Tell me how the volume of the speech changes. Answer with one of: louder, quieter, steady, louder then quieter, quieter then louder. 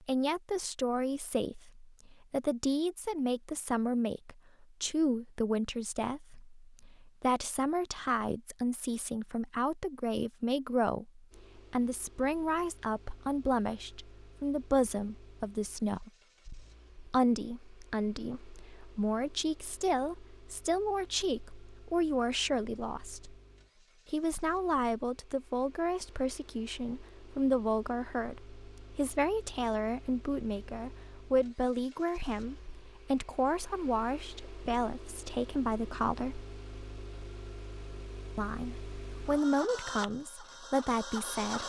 steady.